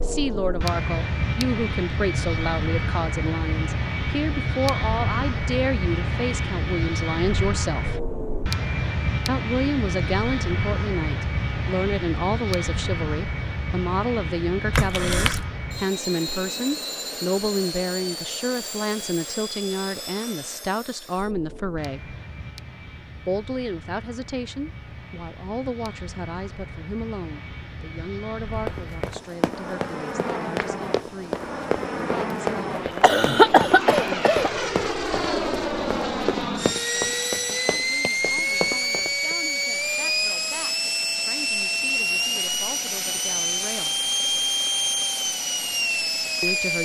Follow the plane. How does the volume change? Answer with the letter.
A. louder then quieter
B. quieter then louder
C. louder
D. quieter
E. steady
B.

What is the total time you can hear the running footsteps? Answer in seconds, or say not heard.
11 s.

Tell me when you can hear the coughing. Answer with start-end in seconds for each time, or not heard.
14.7-15.4, 33.0-34.5.